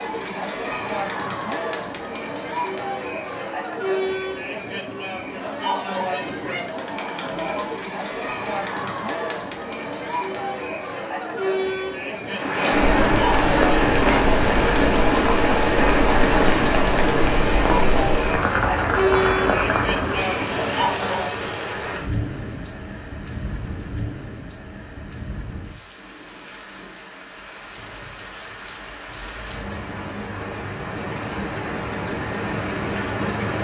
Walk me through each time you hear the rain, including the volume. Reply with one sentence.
The rain can be heard from 12.2 to 33.5 s, getting quieter then louder.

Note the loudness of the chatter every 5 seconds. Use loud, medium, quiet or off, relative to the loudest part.
loud, loud, loud, loud, loud, off, off.